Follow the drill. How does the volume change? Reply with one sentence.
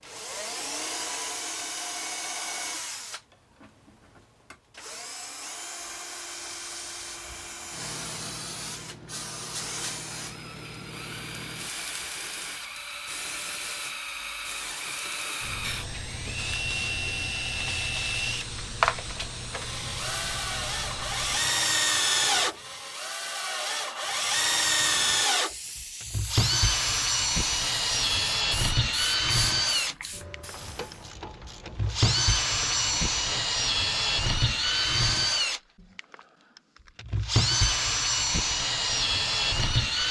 The loudness of the drill goes up.